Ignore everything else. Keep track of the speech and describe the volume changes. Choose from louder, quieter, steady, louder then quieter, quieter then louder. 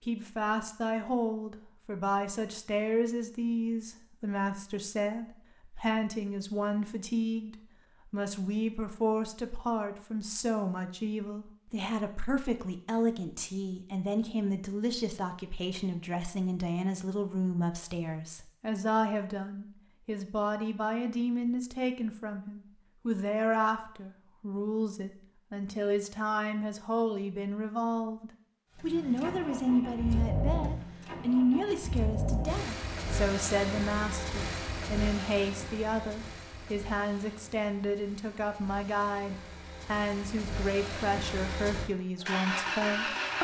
steady.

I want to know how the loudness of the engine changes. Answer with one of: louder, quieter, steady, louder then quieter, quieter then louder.
quieter then louder.